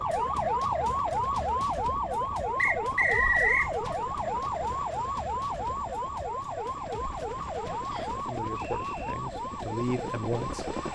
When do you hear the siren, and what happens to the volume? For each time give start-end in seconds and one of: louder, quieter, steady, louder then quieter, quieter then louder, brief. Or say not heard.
0.0-10.8 quieter.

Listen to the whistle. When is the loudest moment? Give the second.
3 s.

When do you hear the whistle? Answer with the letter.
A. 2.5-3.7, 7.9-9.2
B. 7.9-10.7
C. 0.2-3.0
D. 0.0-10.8
A.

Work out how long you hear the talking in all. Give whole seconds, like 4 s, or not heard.
3 s.